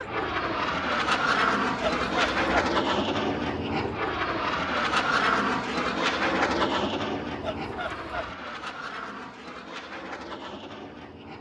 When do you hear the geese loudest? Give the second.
2 s.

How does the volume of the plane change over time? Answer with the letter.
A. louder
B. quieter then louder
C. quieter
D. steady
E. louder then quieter
C.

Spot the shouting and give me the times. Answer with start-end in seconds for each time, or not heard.
not heard.